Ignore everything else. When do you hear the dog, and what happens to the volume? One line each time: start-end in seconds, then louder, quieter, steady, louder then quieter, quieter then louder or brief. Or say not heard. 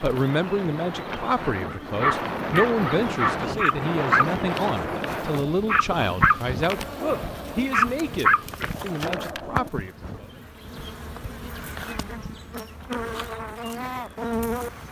1.6-9.7 steady.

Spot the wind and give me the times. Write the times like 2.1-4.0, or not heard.
0.0-14.8.